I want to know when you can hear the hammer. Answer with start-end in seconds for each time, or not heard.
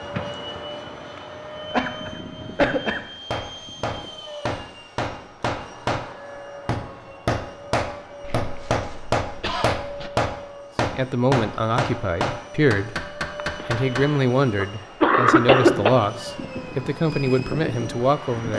3.3-6.0, 6.7-14.1.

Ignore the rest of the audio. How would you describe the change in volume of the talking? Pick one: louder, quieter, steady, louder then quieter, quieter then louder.
steady.